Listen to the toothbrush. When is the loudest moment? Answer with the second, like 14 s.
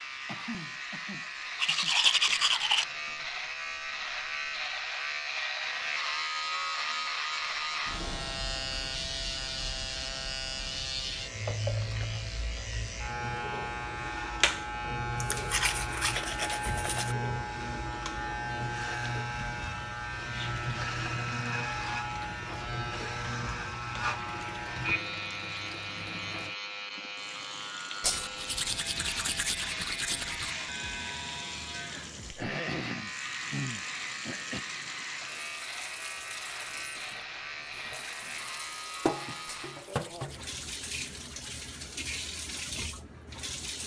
2 s.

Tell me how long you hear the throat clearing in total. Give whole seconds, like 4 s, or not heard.
4 s.